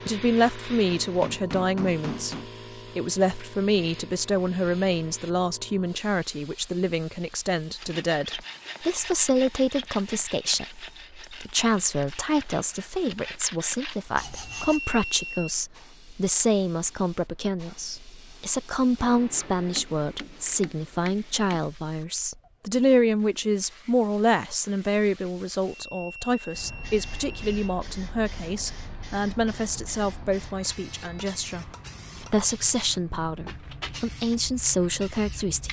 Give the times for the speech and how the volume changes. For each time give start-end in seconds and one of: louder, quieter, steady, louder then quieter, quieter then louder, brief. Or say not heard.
0.1-35.6 steady.